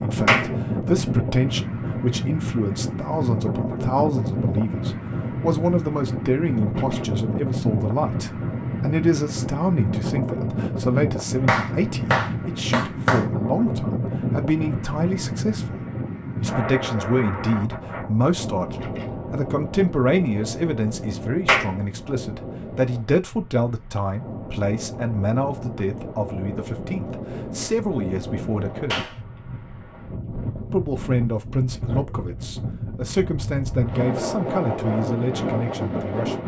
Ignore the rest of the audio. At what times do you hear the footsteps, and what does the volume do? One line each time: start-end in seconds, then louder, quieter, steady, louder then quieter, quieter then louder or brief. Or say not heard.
not heard.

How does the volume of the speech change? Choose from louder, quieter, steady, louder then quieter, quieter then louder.
steady.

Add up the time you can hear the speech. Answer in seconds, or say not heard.
34 s.